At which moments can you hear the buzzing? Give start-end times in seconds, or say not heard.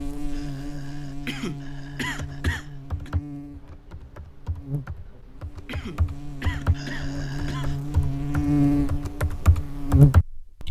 0.0-10.6.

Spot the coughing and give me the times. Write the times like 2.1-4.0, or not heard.
1.2-3.1, 5.7-7.8.